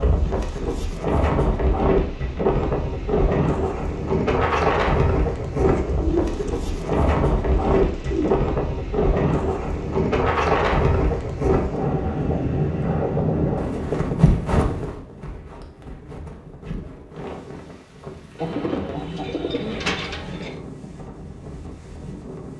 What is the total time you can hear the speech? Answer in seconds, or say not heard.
not heard.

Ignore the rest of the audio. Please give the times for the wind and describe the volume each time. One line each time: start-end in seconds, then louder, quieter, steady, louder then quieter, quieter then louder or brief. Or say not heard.
0.0-22.5 quieter.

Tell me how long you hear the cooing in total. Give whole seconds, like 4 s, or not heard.
5 s.